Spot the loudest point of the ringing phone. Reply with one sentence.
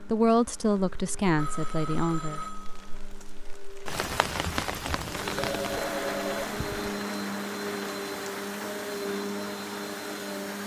The volume of the ringing phone peaks at 6 seconds.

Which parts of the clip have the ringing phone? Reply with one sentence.
You can hear the ringing phone from 1.4 to 3.0 s and from 5.3 to 7.0 s.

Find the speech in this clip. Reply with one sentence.
The speech can be heard from 0.0 to 2.4 s.